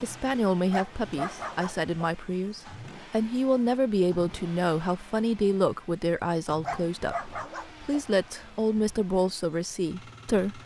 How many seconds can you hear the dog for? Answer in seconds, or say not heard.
4 s.